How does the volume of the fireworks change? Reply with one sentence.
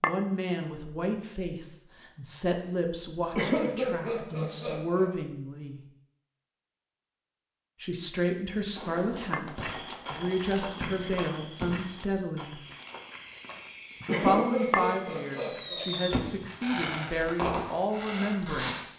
The volume of the fireworks goes up.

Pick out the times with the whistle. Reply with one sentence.
You can't hear the whistle here.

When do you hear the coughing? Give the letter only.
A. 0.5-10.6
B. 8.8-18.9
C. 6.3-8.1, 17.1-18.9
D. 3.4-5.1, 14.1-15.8
D.